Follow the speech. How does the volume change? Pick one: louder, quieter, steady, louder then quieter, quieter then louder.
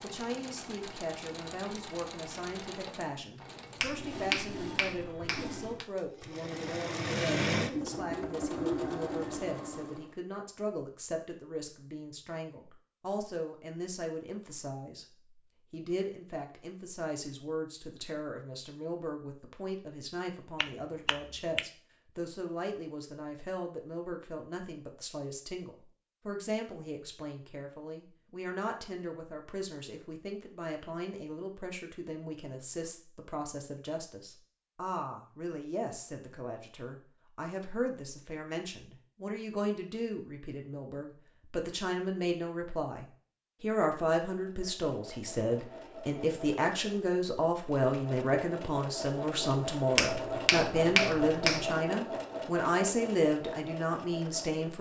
louder.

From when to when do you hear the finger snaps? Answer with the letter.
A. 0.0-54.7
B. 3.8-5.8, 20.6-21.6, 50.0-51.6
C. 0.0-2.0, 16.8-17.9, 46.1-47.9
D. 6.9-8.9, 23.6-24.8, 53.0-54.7
B.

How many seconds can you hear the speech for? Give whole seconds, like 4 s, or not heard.
55 s.